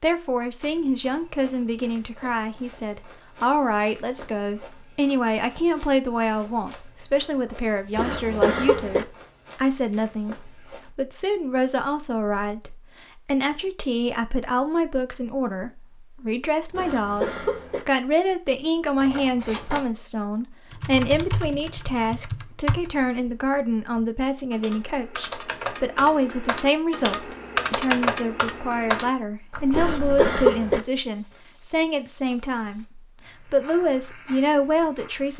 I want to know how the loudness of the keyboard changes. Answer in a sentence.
The volume of the keyboard goes down, then up.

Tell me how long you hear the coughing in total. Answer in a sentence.
You can hear the coughing for 3 seconds altogether.